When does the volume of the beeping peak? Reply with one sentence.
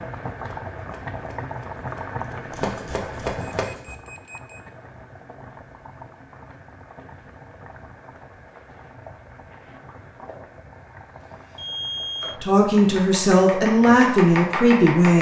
The loudest moment of the beeping is at 12 seconds.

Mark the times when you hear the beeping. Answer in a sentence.
The beeping can be heard from 3.5 to 4.6 s and from 11.6 to 12.4 s.